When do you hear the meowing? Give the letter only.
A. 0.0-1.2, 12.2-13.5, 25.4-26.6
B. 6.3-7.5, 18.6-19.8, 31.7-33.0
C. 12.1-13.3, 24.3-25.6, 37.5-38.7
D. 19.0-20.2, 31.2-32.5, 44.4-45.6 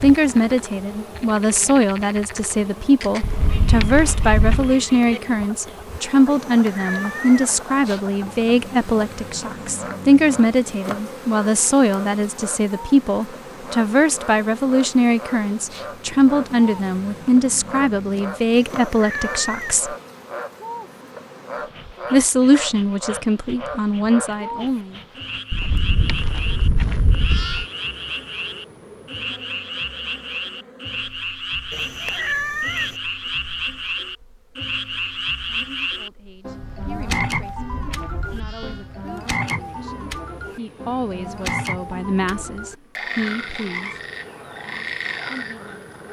B.